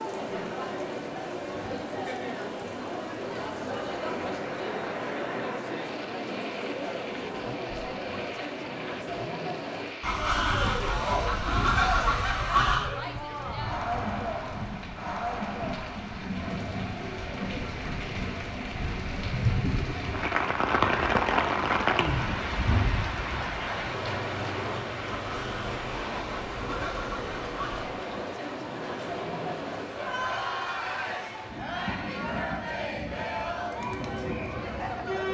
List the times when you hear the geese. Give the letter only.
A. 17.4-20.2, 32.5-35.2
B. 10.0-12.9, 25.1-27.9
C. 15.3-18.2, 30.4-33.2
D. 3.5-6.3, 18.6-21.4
B.